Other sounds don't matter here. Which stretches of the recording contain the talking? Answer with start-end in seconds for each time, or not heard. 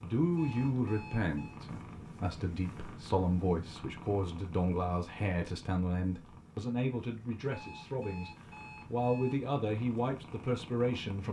0.0-11.2.